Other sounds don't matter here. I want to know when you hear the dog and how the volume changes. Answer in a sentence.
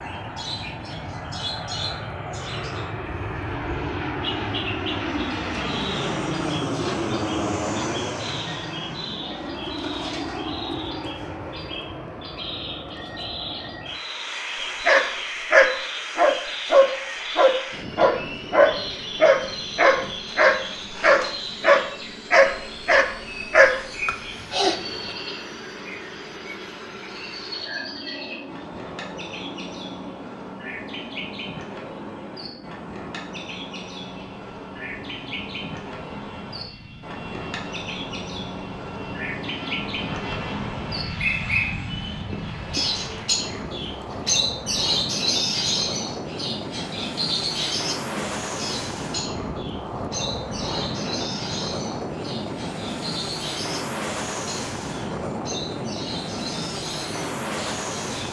The dog can be heard from 14.8 to 25.1 s, at a steady volume.